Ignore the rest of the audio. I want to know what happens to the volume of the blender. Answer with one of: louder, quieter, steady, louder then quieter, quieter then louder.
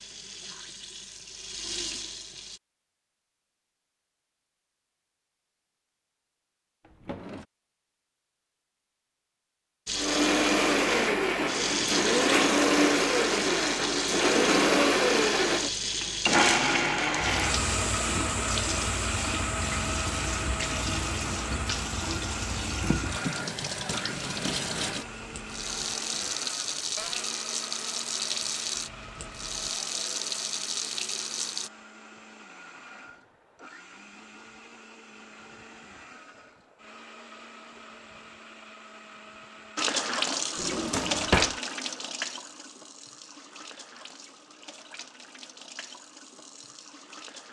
quieter.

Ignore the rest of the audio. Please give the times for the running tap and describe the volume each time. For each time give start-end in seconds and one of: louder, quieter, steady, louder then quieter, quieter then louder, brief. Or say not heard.
0.0-2.6 brief
9.8-31.7 steady
39.8-47.4 quieter.